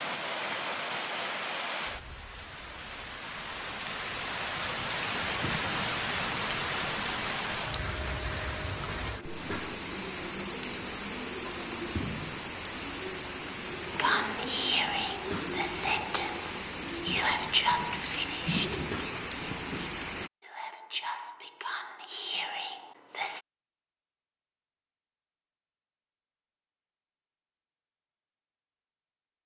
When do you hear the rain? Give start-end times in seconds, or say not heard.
0.0-20.3.